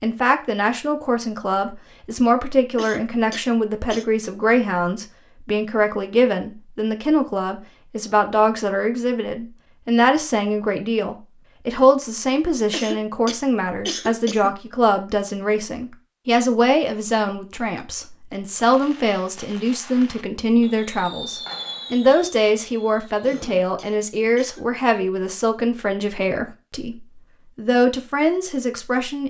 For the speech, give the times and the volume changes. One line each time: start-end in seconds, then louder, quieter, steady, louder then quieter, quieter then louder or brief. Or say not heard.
0.0-29.2 steady.